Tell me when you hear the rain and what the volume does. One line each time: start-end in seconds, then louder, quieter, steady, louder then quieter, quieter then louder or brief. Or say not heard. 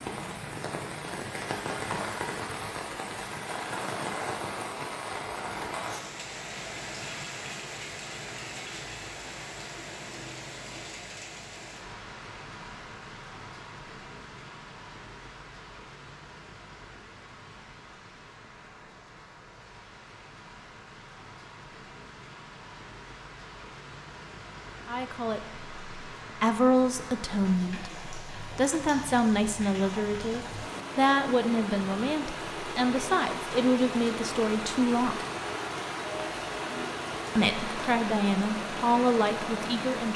0.0-40.1 quieter then louder.